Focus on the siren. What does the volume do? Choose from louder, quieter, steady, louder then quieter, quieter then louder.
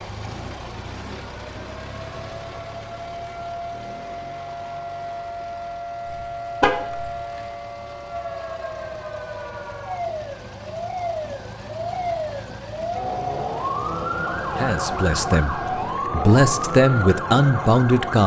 louder.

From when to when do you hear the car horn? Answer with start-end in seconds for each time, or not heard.
6.0-7.1.